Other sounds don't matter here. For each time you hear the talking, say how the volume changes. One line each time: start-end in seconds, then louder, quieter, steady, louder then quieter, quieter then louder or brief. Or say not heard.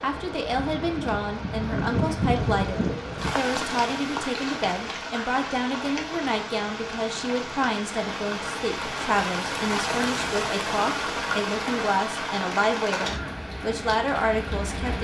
0.0-14.9 steady.